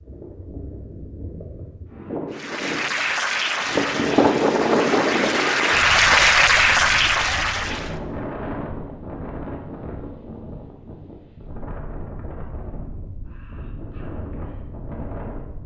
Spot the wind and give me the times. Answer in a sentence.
The wind can be heard from 0.0 to 15.6 s.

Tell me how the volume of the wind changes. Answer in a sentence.
The volume of the wind goes up, then down.